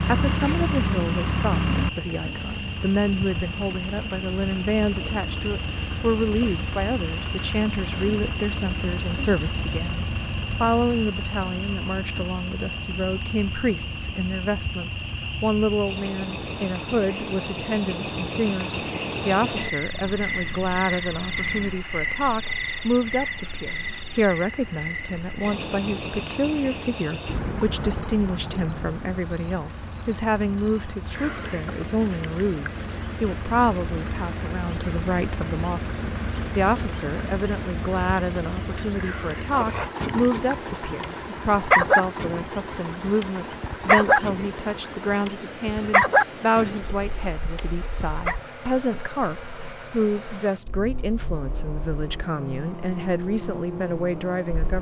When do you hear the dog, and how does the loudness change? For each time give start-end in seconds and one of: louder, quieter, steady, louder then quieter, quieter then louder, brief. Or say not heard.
39.5-48.4 louder then quieter.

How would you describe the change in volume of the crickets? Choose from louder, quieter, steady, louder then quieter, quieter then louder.
louder then quieter.